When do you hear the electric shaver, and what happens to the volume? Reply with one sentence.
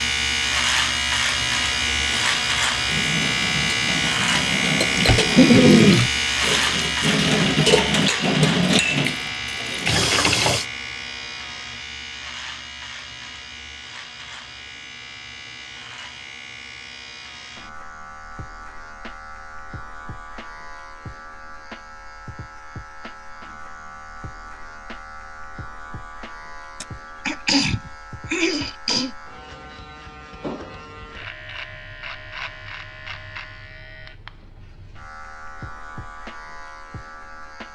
The electric shaver can be heard from 0.0 to 37.7 s, getting quieter.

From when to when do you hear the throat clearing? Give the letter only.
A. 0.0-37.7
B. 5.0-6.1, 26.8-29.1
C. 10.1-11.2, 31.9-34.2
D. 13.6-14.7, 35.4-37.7
B.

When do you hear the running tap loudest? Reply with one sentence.
The loudest moment of the running tap is at 8 seconds.